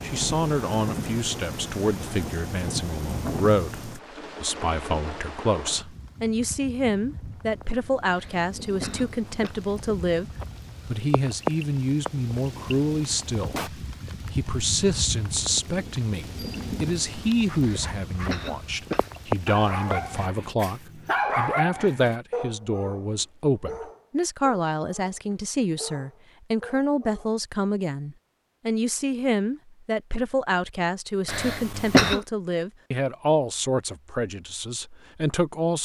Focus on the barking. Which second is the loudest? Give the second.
21 s.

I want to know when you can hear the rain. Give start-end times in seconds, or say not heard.
0.0-20.3.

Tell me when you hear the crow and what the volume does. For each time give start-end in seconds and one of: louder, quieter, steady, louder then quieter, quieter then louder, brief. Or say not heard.
not heard.